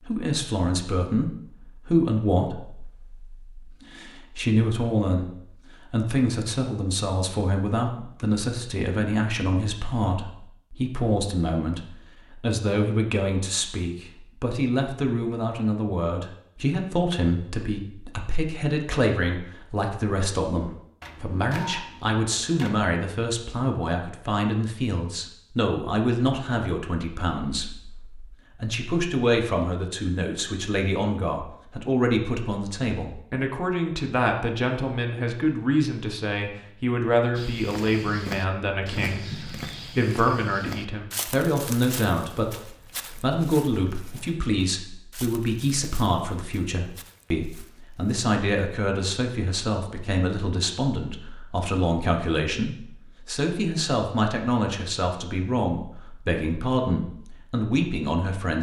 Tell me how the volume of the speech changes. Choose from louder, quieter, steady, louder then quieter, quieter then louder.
steady.